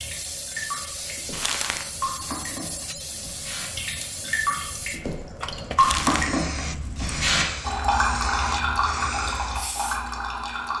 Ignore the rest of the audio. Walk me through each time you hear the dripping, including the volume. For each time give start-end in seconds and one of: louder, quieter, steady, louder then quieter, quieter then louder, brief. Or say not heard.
0.0-10.7 louder.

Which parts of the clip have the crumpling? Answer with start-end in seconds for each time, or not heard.
1.3-1.9, 5.8-6.3.